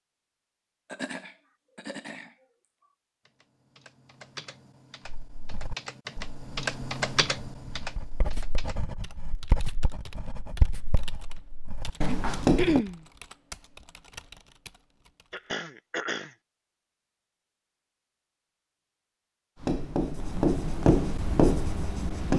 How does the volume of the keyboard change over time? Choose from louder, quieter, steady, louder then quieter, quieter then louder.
louder then quieter.